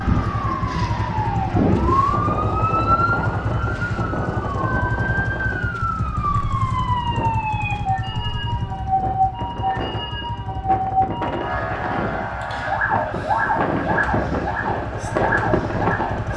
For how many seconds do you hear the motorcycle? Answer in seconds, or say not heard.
16 s.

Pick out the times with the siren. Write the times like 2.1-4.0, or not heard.
0.1-16.3.